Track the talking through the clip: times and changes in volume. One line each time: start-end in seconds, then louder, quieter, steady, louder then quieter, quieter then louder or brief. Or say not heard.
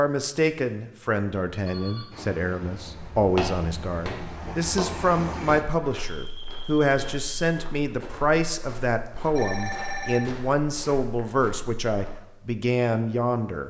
0.0-13.6 steady.